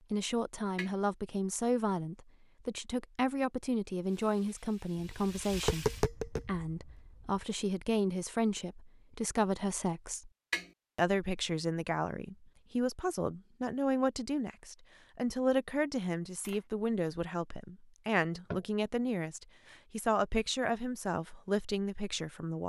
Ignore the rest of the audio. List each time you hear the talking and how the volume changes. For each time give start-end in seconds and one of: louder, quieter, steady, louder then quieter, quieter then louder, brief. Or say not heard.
0.1-10.3 steady
10.9-22.6 steady.